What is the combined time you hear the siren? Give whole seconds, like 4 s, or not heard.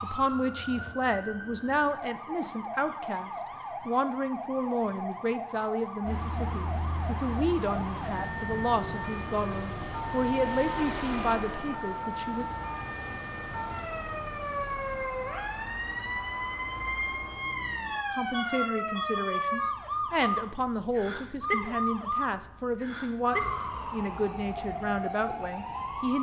26 s.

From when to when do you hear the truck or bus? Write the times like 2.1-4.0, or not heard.
6.0-19.4.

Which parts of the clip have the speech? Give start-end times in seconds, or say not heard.
0.0-12.4, 18.1-26.1.